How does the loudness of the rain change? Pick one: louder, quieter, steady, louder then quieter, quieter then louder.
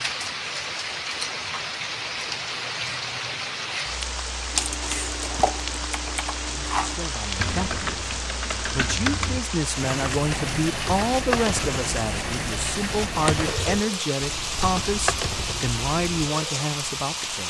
steady.